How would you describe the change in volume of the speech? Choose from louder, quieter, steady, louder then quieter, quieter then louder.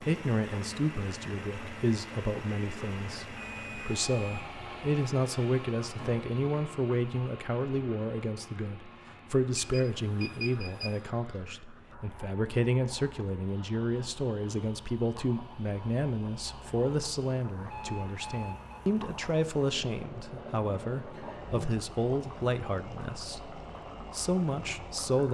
steady.